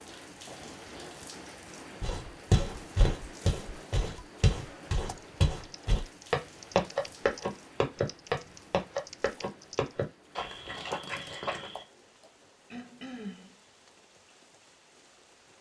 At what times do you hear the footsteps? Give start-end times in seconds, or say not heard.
2.0-11.8.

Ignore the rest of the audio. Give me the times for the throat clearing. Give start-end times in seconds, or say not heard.
0.5-1.2, 12.2-13.6.